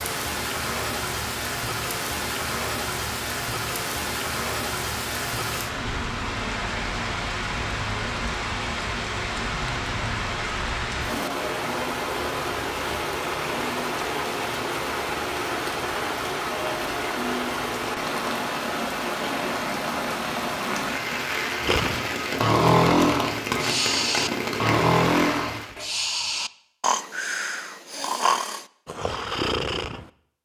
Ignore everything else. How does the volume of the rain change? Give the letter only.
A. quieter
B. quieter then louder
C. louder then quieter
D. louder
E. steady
E.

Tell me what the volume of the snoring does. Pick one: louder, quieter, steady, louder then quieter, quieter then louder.
quieter.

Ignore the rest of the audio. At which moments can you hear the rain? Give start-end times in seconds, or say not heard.
0.0-25.8.